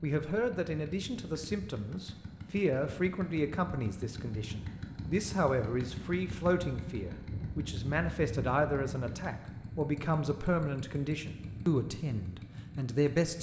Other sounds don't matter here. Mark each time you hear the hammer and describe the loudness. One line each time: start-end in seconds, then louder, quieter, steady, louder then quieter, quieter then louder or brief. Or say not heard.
not heard.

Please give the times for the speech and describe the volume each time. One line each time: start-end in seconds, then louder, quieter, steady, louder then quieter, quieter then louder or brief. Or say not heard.
0.0-13.3 steady.